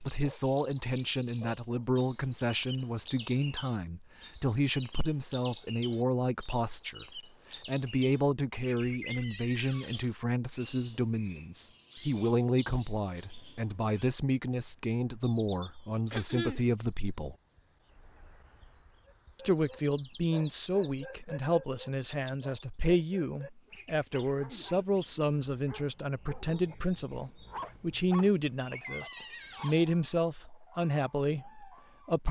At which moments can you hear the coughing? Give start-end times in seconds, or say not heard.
16.1-16.6.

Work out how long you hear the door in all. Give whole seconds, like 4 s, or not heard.
3 s.